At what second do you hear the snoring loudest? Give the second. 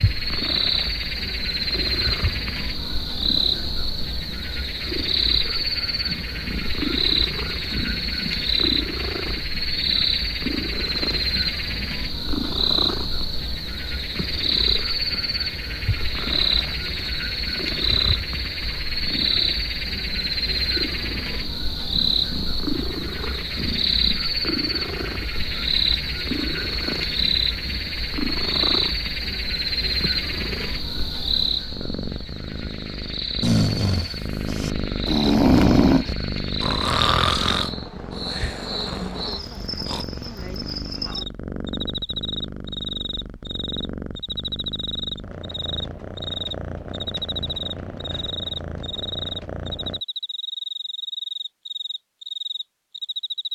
36 s.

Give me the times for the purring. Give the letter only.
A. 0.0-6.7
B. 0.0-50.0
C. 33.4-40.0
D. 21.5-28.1
B.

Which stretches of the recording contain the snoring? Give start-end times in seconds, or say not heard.
33.4-40.0.